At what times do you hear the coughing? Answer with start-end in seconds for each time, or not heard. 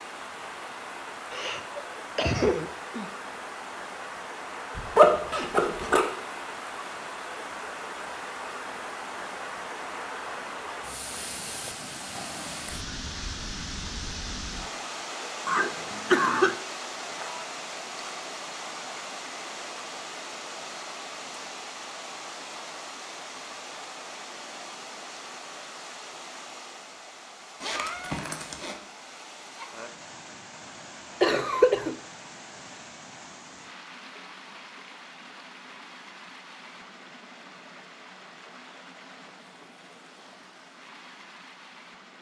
1.3-3.0, 15.4-16.6, 31.2-31.9.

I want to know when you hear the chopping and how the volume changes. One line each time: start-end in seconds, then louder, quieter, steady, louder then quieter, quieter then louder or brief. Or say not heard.
not heard.